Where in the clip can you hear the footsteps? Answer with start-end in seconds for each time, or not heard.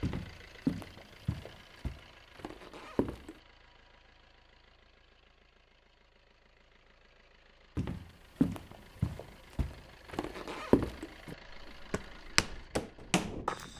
0.0-3.4, 7.8-13.7.